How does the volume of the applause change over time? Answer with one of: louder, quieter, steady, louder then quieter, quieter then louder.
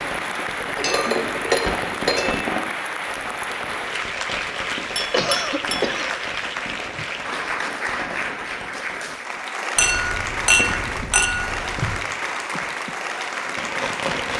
steady.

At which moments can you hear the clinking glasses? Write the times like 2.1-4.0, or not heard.
0.6-2.5, 5.0-6.0, 9.8-12.0.